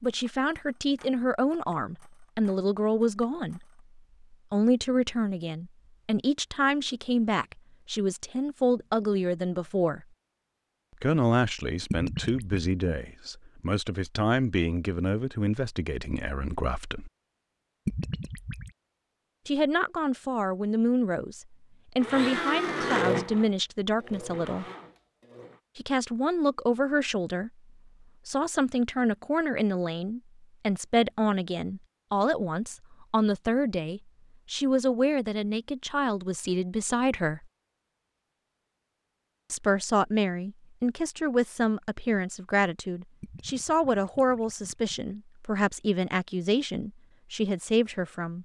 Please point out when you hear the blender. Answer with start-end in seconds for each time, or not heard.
22.0-25.6.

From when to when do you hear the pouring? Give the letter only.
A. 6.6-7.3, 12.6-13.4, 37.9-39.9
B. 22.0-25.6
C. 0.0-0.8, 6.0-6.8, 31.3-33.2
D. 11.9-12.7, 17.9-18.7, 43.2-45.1
D.